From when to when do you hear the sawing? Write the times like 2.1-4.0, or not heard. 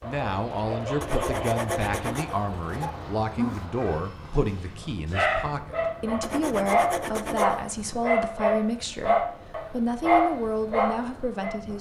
1.0-2.9, 6.2-7.8.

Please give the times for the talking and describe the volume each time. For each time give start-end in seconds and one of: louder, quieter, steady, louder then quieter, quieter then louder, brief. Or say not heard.
0.0-11.7 steady.